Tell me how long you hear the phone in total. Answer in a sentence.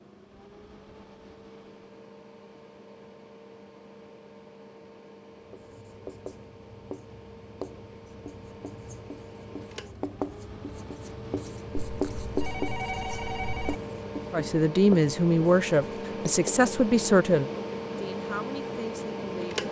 The phone can be heard for 2 seconds in total.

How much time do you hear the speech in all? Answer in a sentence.
The speech can be heard for 5 seconds in total.